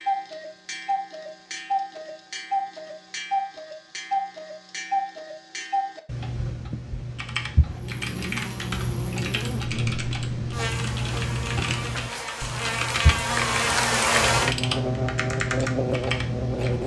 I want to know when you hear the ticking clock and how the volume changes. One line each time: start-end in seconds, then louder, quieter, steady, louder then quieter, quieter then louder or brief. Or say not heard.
0.0-16.8 steady.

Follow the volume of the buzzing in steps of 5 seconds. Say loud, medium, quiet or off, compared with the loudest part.
off, medium, loud, loud.